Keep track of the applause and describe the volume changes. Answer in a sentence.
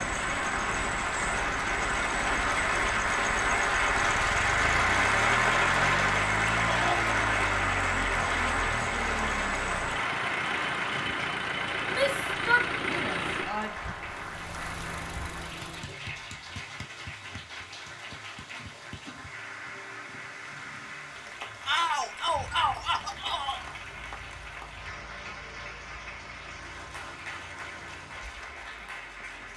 The volume of the applause goes down.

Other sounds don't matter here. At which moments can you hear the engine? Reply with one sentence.
The engine can be heard from 0.0 to 29.5 s.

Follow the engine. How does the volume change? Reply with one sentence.
The loudness of the engine goes down.